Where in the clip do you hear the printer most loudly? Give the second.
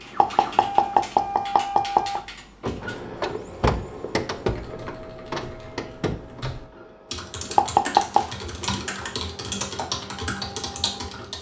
4 s.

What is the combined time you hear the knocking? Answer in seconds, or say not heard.
3 s.